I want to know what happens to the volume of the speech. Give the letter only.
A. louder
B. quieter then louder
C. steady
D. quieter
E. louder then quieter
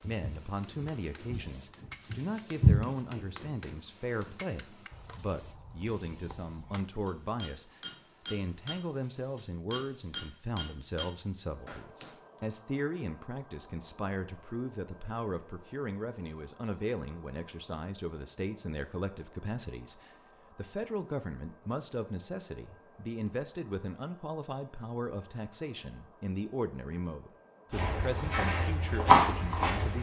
C.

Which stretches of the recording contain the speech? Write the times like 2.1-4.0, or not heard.
0.1-29.9.